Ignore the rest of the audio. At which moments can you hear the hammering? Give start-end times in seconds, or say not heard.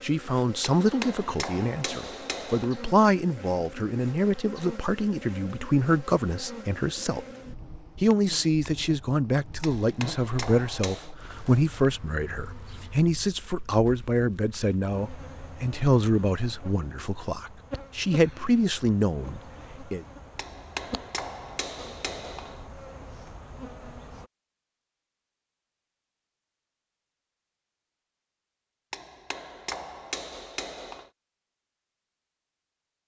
0.6-2.7, 9.6-11.2, 20.4-22.6, 28.9-31.1.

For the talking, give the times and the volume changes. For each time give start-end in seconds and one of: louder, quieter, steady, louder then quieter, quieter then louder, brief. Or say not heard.
0.0-7.2 steady
8.0-20.1 steady.